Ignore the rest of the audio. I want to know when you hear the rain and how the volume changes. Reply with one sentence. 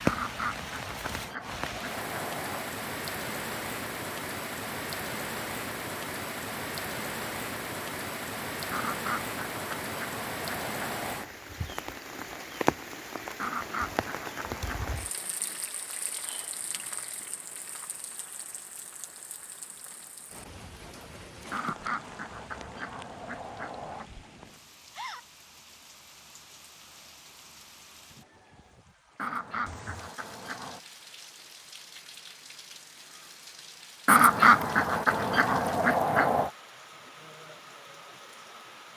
The rain can be heard from 0.0 to 38.9 s, getting quieter.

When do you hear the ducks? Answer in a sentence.
You can hear the ducks from 0.1 to 2.6 s, from 8.7 to 11.3 s, from 13.3 to 15.0 s, from 21.5 to 24.1 s, from 29.1 to 30.8 s and from 34.0 to 36.5 s.